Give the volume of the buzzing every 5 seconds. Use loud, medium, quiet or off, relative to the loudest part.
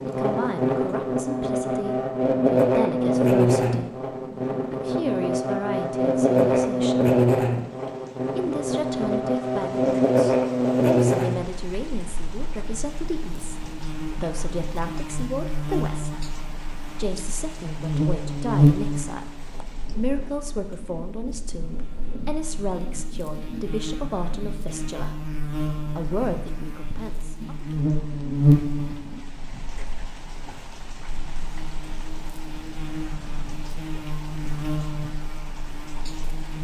loud, loud, loud, loud, quiet, loud, quiet, quiet.